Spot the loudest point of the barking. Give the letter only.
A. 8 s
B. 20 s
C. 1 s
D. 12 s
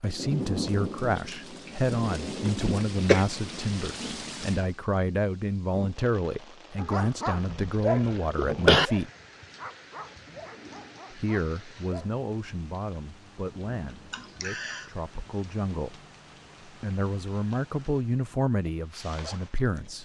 A.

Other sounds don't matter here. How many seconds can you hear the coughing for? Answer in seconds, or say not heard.
3 s.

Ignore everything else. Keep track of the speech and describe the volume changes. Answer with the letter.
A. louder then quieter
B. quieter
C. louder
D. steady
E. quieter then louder
E.